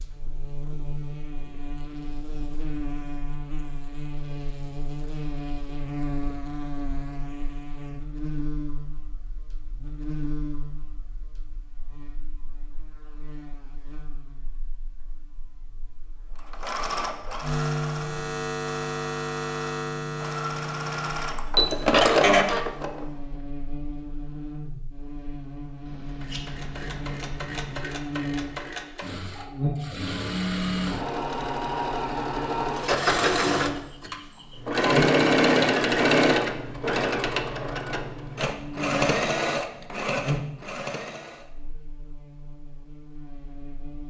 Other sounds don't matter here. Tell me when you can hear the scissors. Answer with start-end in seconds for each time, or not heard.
25.9-27.9.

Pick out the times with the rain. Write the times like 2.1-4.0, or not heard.
not heard.